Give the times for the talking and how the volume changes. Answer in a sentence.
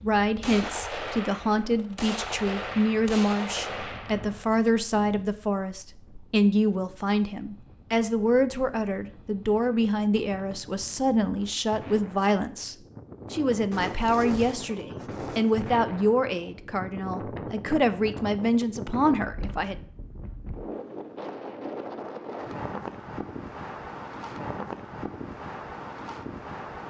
The talking can be heard from 0.0 to 19.8 s, at a steady volume.